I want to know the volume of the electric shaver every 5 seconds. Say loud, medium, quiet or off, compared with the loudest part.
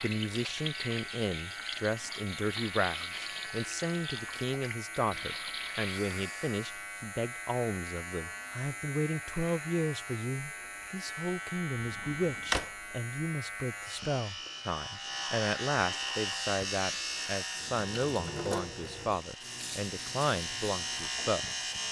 medium, medium, medium, loud, loud.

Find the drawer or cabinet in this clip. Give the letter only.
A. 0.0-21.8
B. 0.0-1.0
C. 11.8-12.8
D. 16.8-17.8
C.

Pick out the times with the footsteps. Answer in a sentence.
The footsteps can't be heard in this clip.